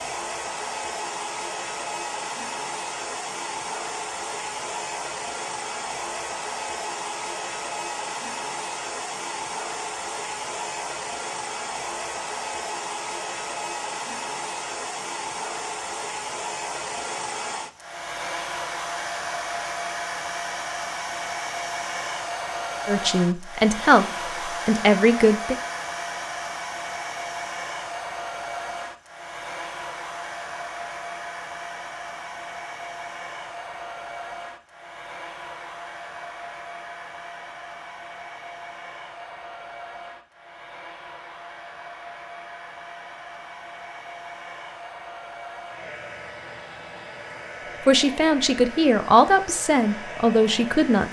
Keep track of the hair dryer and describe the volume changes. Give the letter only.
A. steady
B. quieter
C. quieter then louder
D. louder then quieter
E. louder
B.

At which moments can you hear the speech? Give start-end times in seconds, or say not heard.
22.9-25.6, 47.9-51.0.